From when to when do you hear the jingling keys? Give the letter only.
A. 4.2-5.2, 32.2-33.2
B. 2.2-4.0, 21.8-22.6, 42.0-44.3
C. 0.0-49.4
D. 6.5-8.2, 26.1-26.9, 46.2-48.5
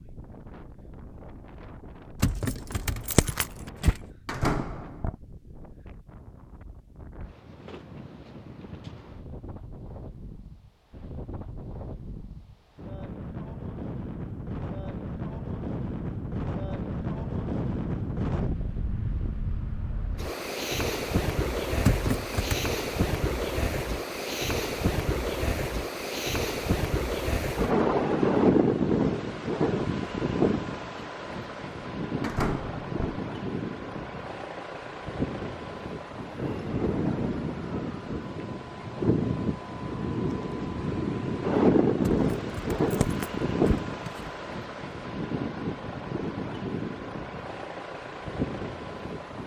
B.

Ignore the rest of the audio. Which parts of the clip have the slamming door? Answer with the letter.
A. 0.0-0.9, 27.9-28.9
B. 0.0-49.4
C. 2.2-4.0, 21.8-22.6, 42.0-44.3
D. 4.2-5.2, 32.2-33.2
D.